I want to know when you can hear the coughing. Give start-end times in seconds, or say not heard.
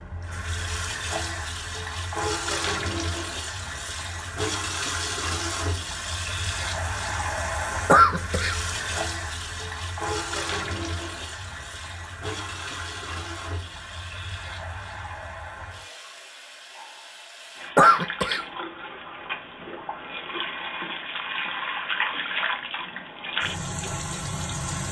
7.8-9.0, 17.8-18.4.